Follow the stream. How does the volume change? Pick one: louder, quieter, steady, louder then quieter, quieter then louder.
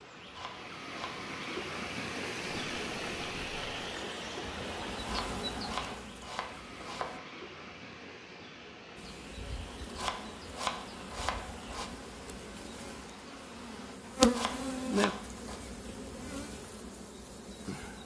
quieter.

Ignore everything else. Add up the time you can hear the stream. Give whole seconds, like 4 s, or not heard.
14 s.